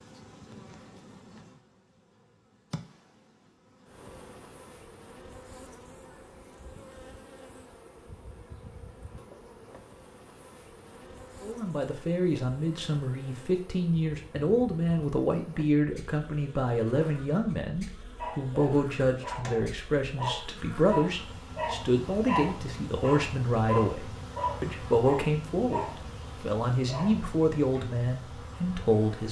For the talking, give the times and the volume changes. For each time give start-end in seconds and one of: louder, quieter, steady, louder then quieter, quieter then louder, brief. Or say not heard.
11.4-25.8 steady
26.4-29.2 brief.